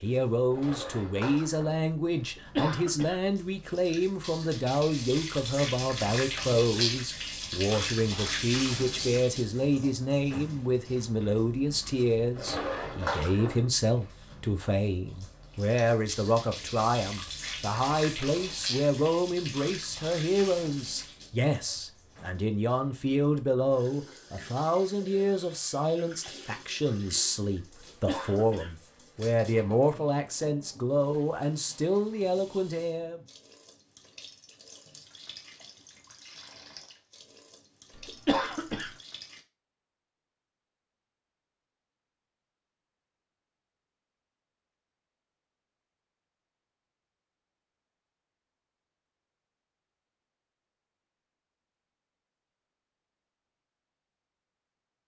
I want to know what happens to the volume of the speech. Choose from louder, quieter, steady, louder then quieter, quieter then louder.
steady.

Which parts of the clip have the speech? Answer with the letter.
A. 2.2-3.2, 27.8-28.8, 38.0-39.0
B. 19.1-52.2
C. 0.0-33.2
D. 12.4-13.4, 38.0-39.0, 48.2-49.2
C.